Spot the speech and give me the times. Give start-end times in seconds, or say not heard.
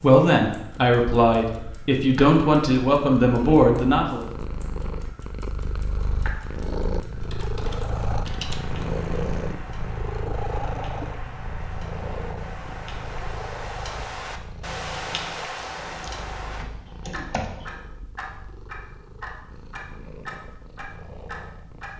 0.0-4.2.